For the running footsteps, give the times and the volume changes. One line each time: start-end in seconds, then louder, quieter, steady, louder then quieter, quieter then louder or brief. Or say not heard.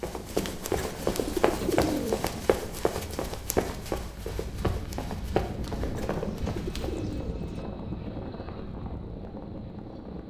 0.0-7.2 quieter.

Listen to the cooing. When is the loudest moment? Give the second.
2 s.